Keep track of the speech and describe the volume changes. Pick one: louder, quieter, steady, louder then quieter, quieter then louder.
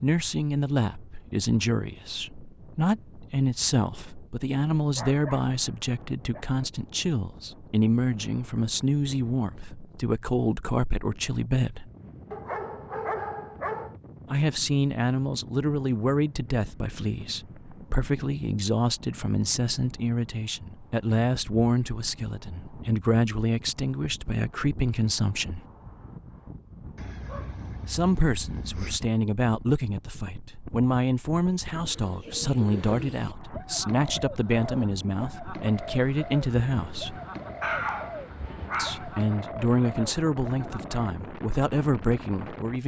steady.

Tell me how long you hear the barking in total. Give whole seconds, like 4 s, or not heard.
7 s.